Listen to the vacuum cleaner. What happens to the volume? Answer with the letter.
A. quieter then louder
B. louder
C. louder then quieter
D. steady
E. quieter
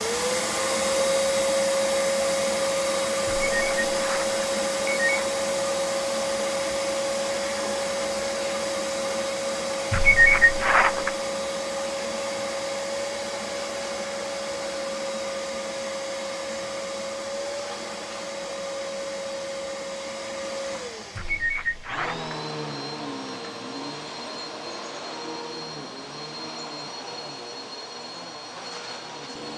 E.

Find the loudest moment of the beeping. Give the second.
10 s.